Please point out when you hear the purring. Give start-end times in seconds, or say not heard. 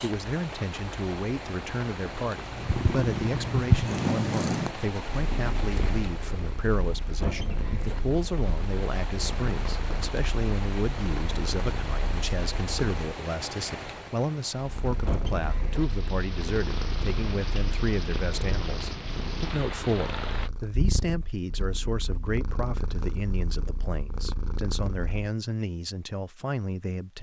2.5-13.0, 14.6-25.3.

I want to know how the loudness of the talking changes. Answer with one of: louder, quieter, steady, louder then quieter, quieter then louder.
steady.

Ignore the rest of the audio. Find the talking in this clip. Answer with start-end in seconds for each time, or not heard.
0.0-27.1.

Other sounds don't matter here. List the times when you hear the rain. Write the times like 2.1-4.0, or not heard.
0.0-20.5.